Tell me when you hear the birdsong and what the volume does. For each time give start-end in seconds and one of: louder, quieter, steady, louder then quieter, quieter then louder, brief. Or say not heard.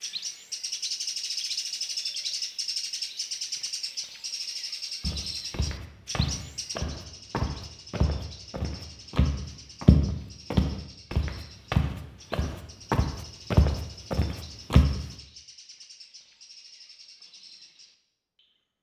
0.0-18.6 quieter.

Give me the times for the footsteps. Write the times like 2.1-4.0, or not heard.
5.0-14.9.